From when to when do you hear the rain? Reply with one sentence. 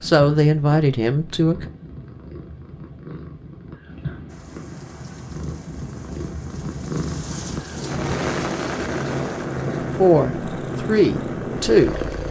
You can hear the rain from 4.2 to 12.2 s.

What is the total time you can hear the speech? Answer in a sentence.
The speech can be heard for 4 seconds in total.